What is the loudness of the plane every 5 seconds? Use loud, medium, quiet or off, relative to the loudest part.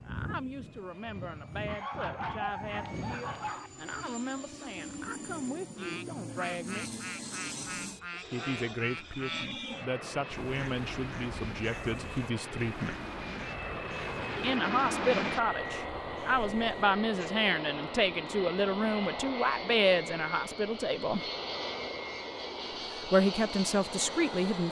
medium, medium, loud, loud, loud.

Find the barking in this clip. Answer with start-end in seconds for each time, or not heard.
1.6-3.7.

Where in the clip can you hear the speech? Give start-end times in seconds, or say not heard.
0.0-6.9, 8.3-13.0, 14.4-21.2, 22.9-24.6.